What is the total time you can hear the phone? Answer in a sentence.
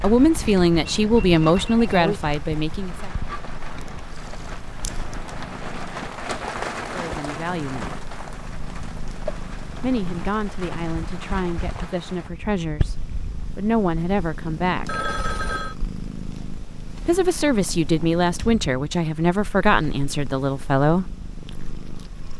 The phone can be heard for 2 seconds in total.